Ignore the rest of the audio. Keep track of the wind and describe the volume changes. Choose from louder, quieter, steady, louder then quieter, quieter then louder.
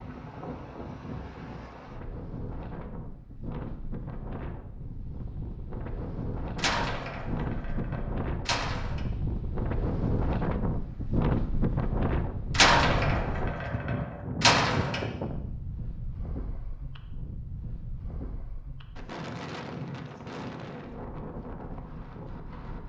louder then quieter.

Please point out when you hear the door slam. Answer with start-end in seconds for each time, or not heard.
6.5-9.1, 12.6-15.1.